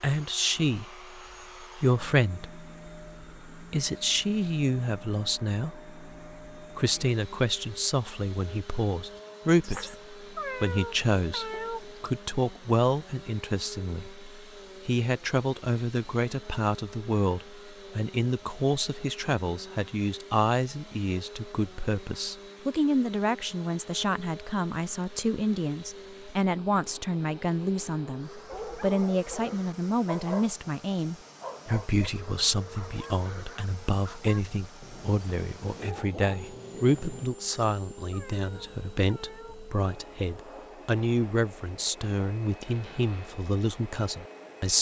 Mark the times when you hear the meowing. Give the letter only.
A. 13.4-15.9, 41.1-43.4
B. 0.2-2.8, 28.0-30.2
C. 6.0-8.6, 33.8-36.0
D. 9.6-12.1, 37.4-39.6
D.